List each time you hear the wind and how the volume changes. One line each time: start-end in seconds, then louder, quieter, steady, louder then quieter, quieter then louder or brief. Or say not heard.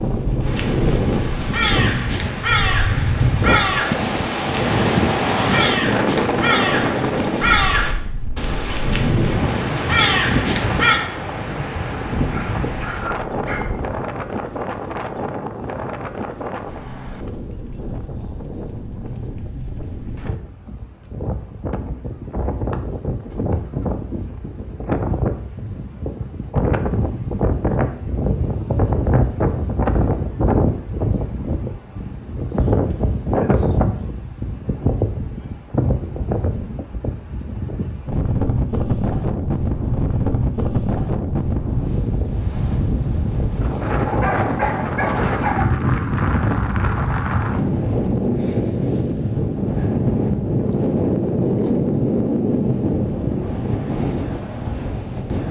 0.0-55.4 quieter then louder.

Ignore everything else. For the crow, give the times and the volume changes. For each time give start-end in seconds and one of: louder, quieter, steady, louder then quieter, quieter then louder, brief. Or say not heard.
0.4-11.0 steady.